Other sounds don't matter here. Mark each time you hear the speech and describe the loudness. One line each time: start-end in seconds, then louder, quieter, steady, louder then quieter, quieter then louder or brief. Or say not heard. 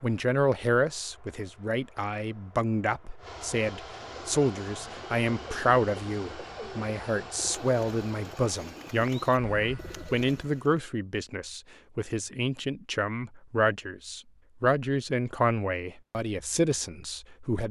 0.0-17.6 steady.